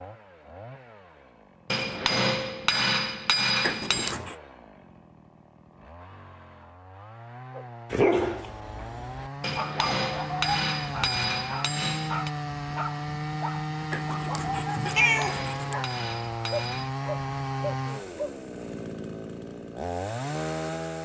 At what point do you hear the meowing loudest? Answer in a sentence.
The loudest moment of the meowing is at 15 seconds.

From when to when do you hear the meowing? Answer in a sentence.
You can hear the meowing from 3.6 to 4.3 s and from 13.9 to 15.8 s.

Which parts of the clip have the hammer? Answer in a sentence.
The hammer can be heard from 1.7 to 4.2 s, from 9.4 to 12.3 s and from 14.8 to 16.9 s.